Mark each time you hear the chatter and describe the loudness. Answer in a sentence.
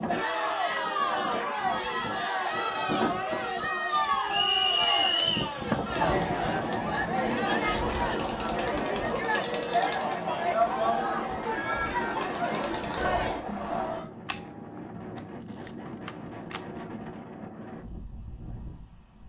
You can hear the chatter from 0.1 to 14.1 s, at a steady volume.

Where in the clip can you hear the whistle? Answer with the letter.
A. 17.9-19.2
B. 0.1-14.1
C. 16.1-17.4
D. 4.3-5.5
D.